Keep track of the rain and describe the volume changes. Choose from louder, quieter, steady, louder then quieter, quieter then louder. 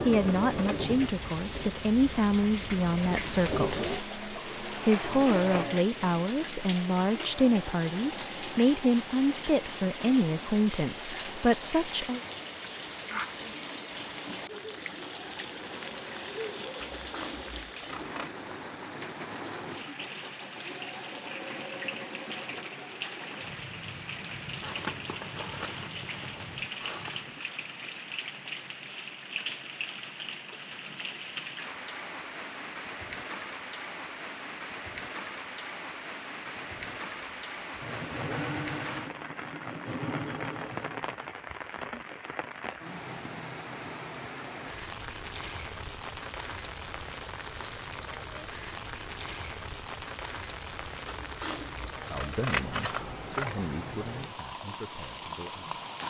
steady.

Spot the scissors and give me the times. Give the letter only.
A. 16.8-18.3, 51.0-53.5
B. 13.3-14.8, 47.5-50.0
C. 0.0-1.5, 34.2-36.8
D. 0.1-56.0
A.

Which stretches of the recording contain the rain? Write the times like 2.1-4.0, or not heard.
0.1-56.0.